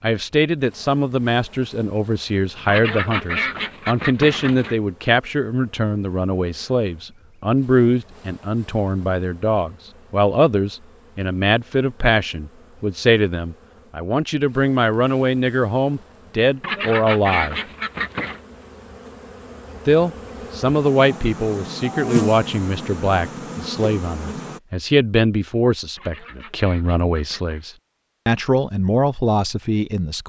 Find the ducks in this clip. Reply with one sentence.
The ducks can be heard from 2.6 to 4.8 s, from 16.6 to 18.4 s and from 25.9 to 27.6 s.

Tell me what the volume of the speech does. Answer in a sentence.
The loudness of the speech stays about the same.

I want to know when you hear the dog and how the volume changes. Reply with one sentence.
The dog can't be heard in this clip.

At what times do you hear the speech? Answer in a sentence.
You can hear the speech from 0.0 to 17.6 s and from 19.9 to 30.2 s.